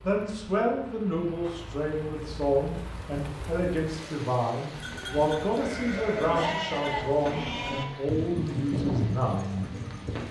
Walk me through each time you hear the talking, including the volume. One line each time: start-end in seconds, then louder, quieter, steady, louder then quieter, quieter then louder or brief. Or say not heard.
0.0-9.7 steady.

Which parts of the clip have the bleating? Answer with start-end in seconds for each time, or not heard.
4.7-10.2.